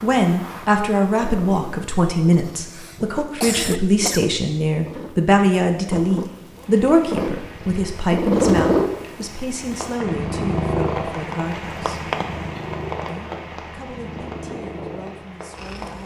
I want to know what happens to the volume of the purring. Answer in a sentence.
The volume of the purring goes up, then down.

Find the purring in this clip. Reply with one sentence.
The purring can be heard from 0.0 to 16.0 s.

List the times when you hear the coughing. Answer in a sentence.
You can hear the coughing from 2.6 to 4.2 s.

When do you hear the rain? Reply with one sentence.
You can hear the rain from 6.5 to 16.0 s.